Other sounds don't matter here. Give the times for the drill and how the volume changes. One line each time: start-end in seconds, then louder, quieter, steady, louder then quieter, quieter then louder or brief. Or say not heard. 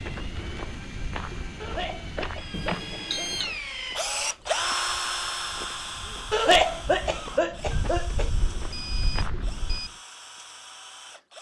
0.0-11.3 louder then quieter.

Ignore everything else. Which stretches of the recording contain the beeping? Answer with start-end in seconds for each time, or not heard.
2.5-3.5, 7.8-9.9.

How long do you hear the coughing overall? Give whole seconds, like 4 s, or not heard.
4 s.